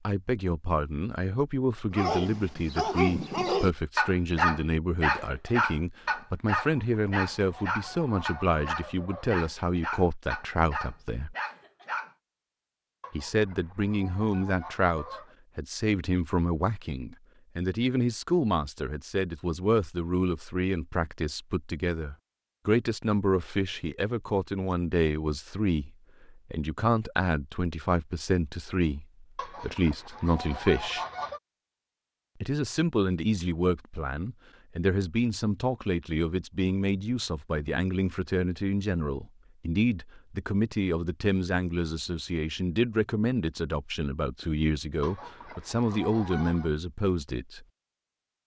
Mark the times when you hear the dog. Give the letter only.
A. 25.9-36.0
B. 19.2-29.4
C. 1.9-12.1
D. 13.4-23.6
C.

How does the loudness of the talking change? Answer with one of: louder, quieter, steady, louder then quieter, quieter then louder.
steady.